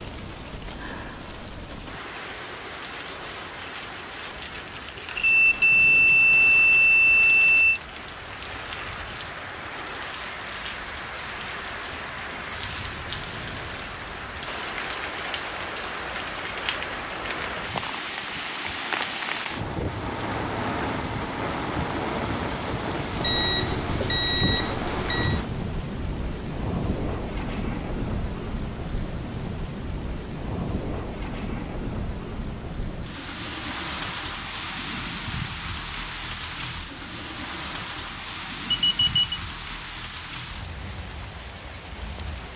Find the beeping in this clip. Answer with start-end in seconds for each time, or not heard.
5.2-7.8, 23.2-25.4, 38.7-39.4.